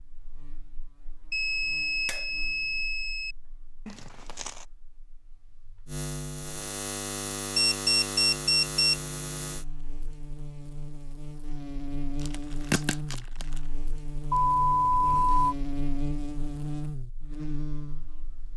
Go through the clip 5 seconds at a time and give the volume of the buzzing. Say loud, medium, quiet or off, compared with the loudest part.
quiet, loud, loud, loud.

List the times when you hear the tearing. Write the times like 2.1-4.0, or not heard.
3.9-4.7, 12.2-13.6.